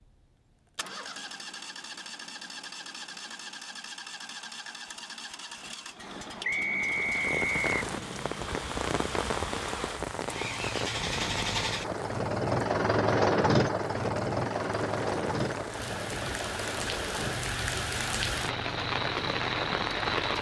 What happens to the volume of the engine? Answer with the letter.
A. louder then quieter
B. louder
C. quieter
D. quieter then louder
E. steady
A.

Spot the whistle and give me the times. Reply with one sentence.
You can hear the whistle from 6.4 to 7.7 s.